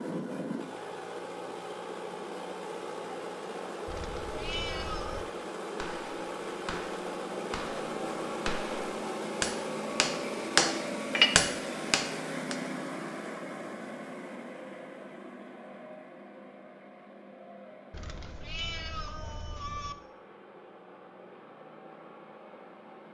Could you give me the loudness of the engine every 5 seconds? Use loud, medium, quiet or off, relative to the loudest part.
loud, loud, loud, quiet, quiet.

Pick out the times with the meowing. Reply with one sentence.
You can hear the meowing from 3.9 to 5.2 s and from 17.9 to 19.9 s.